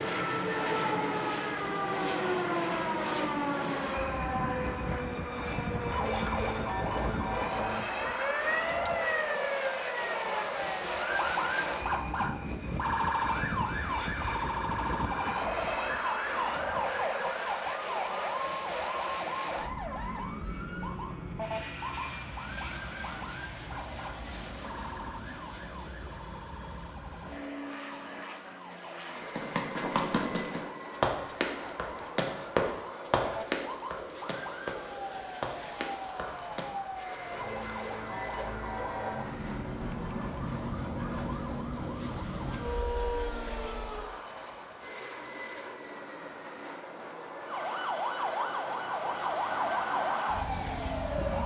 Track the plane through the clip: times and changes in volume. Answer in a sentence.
You can hear the plane from 0.0 to 51.4 s, getting quieter.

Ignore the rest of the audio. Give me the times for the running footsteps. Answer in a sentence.
You can hear the running footsteps from 29.1 to 36.6 s.